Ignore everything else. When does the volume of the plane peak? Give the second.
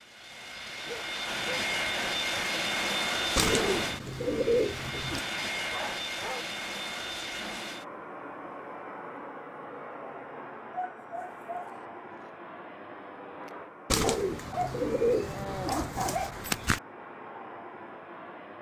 3 s.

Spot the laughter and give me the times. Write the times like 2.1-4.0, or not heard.
not heard.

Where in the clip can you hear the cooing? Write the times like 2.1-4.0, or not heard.
3.4-5.2, 13.9-16.8.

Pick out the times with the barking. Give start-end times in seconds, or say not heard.
0.8-1.6, 5.7-6.5, 10.7-12.3, 14.0-16.4.